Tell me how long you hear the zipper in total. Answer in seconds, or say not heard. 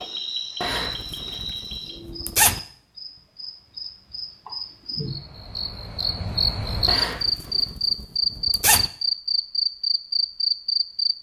4 s.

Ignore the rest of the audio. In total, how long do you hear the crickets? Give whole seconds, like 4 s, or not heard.
11 s.